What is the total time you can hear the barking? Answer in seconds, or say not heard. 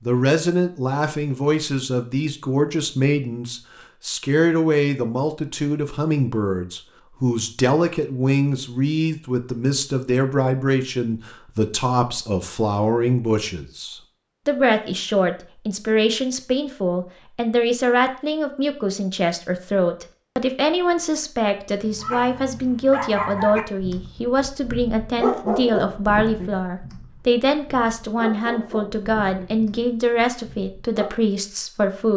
9 s.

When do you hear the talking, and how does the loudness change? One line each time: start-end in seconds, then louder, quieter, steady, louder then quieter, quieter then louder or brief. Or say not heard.
0.0-32.1 steady.